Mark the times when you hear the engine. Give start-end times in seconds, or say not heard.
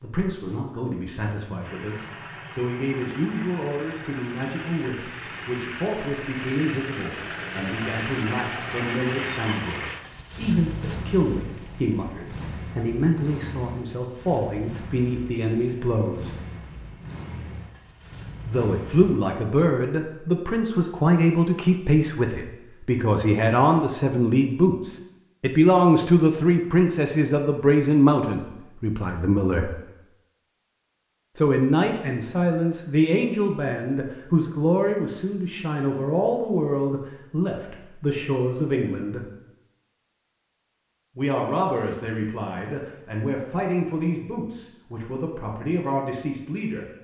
1.6-19.2.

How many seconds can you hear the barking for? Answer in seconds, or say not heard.
not heard.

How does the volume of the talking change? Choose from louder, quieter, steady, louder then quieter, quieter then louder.
louder then quieter.